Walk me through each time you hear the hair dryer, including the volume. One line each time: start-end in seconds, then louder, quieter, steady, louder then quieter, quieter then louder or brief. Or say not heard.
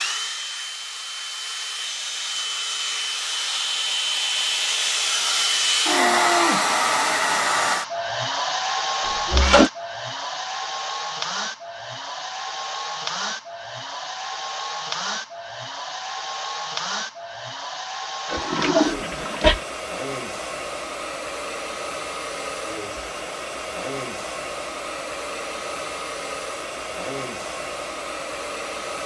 0.0-29.0 quieter.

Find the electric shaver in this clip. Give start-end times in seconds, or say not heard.
not heard.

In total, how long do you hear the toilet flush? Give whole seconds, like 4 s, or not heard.
2 s.